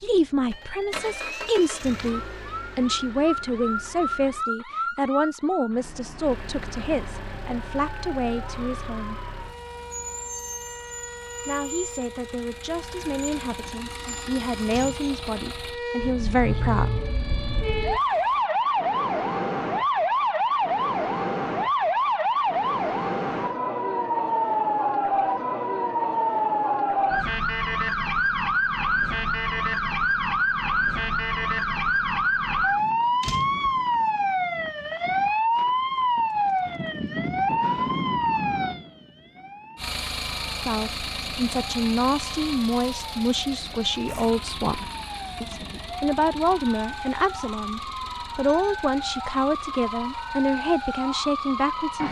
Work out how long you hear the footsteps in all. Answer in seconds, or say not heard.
not heard.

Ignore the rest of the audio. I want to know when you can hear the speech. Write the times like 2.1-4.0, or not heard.
0.0-9.2, 11.4-16.9, 40.6-52.0.